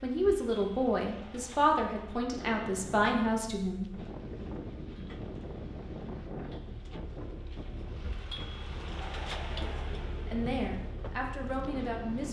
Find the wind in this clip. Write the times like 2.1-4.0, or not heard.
4.0-12.2.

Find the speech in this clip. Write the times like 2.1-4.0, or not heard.
0.0-3.9, 10.2-12.2.